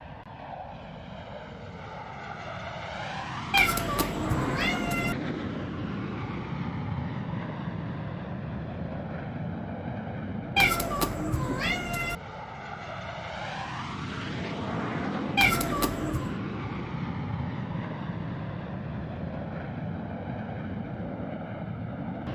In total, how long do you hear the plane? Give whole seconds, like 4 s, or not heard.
22 s.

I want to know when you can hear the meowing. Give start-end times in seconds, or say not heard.
3.5-5.2, 10.6-12.2, 15.3-16.4.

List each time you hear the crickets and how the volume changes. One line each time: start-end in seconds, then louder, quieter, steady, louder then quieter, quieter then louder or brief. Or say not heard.
not heard.